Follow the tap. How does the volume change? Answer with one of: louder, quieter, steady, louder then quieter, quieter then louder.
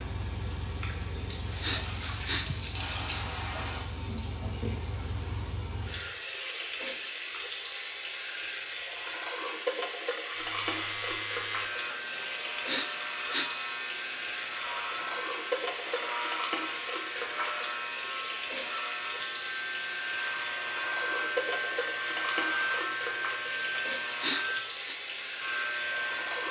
steady.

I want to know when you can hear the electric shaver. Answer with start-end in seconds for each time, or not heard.
10.3-26.4.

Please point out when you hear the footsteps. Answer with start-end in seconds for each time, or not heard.
not heard.